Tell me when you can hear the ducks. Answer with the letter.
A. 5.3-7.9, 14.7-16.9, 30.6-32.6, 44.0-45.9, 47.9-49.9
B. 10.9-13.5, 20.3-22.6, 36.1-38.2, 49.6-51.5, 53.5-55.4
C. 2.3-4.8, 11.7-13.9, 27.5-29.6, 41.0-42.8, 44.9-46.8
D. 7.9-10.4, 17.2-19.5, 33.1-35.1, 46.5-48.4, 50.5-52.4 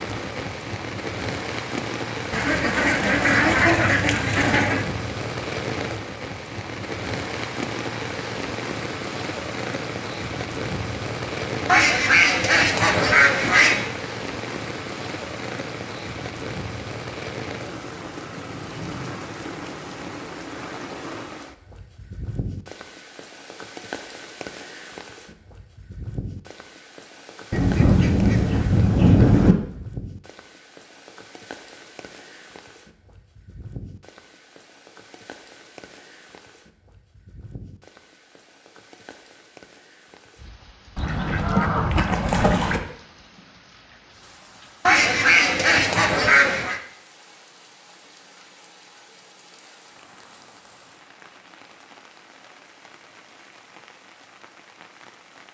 C.